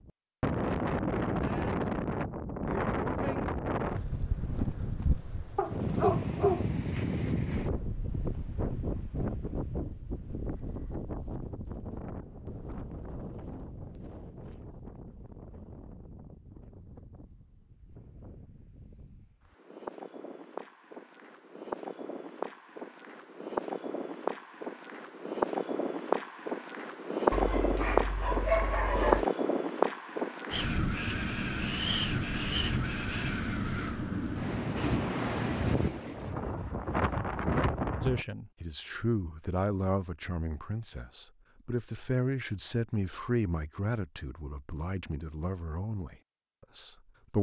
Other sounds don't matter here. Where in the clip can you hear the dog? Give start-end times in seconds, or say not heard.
5.5-6.7, 27.3-29.2.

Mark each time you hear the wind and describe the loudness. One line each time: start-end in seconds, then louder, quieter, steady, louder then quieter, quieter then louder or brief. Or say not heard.
0.1-38.2 quieter then louder.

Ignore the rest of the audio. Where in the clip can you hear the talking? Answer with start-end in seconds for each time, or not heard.
38.0-46.1, 46.8-47.3.